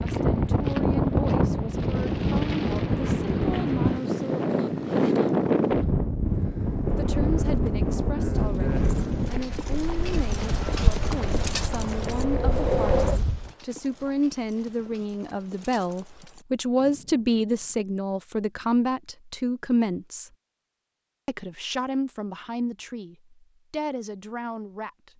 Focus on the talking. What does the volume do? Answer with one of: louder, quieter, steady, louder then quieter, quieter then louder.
louder then quieter.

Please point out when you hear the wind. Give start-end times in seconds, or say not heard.
0.0-13.5.